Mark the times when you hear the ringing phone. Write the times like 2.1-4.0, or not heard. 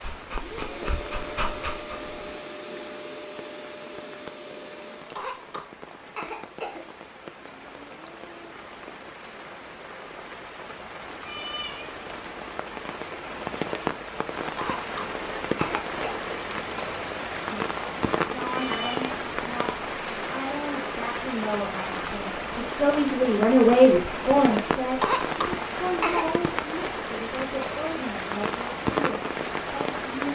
not heard.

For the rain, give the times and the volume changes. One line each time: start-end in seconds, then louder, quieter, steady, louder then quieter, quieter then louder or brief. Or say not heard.
0.0-30.3 louder.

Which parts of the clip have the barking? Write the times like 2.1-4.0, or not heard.
0.0-2.2.